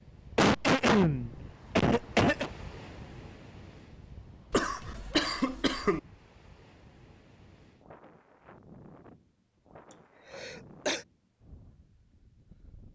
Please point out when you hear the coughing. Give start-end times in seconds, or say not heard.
0.3-2.5, 4.5-6.0, 9.9-11.1.